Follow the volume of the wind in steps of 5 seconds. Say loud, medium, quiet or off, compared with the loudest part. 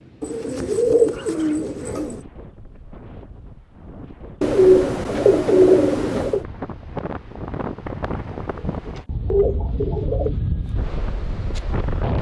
quiet, loud, loud.